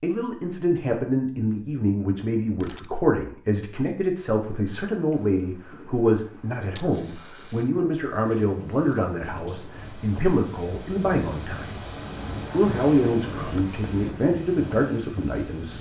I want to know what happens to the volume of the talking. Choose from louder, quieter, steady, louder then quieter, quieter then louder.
steady.